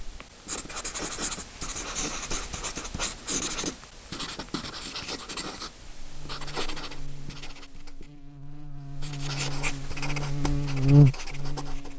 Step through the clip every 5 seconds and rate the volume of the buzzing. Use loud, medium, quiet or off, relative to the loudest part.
off, quiet, loud.